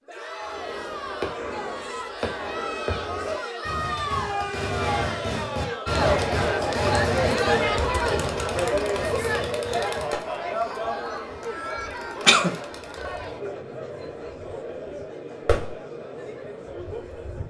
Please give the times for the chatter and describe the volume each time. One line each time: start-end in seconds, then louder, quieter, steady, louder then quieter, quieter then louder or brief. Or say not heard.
0.1-17.4 louder then quieter.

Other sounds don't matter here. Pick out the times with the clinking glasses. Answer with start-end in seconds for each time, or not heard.
not heard.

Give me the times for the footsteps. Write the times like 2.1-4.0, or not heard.
not heard.